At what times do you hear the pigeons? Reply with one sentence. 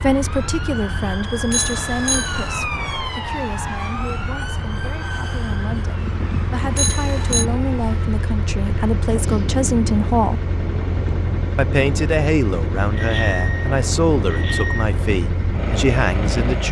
You can't hear the pigeons here.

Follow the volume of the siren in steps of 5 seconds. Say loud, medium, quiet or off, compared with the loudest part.
loud, medium, off, off.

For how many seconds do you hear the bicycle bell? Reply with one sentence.
You can hear the bicycle bell for 4 seconds altogether.